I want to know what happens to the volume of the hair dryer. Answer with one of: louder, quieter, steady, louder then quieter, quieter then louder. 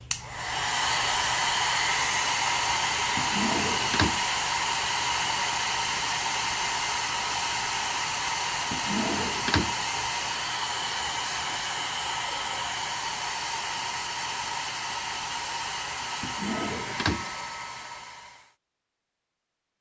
quieter.